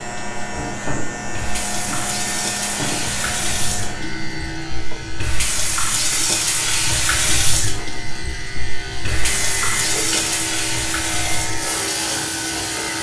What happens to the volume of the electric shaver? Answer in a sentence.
The volume of the electric shaver goes down, then up.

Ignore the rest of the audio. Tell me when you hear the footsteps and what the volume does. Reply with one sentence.
You can't hear the footsteps here.